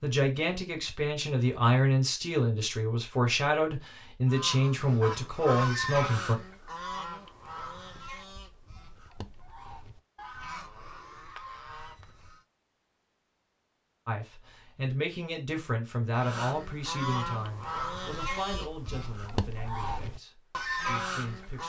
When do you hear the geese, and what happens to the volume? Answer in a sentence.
The geese can be heard from 4.2 to 12.4 s, getting quieter; and from 16.1 to 21.6 s, getting quieter then louder.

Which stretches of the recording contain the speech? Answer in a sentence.
The speech can be heard from 0.0 to 6.4 s and from 14.1 to 21.6 s.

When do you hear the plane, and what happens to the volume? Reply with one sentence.
The plane can't be heard in this clip.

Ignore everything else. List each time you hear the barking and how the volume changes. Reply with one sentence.
The barking can't be heard in this clip.